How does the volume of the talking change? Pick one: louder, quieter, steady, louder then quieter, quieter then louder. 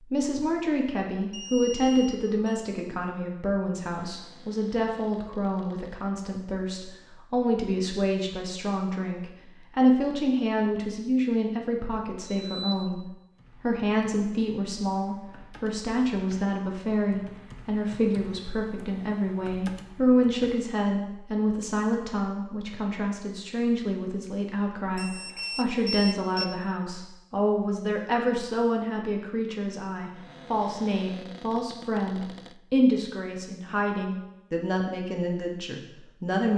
steady.